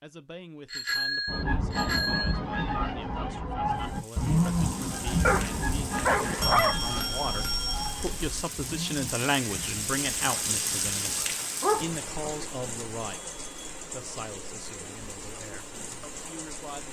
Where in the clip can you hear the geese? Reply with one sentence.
The geese can be heard from 1.2 to 11.3 s.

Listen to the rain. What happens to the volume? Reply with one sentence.
The loudness of the rain goes up, then down.